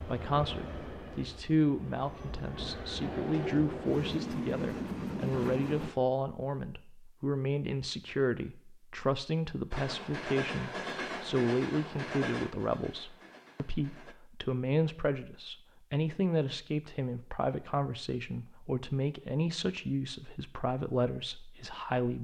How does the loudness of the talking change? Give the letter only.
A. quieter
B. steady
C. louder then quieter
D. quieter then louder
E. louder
B.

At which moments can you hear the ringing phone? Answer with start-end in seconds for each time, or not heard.
not heard.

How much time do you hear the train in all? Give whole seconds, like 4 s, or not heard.
10 s.